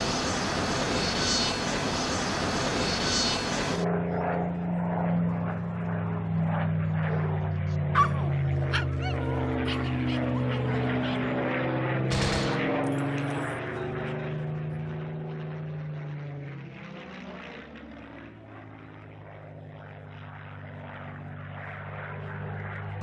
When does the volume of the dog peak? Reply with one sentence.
The loudest moment of the dog is at 8 seconds.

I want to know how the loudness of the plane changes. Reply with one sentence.
The loudness of the plane goes down.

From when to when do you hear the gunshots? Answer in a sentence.
The gunshots can be heard from 12.1 to 13.6 s.